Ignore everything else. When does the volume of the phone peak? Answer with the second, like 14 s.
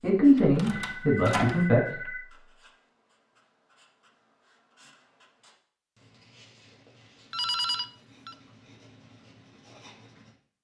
8 s.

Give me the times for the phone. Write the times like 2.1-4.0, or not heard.
0.7-2.2, 7.3-8.3.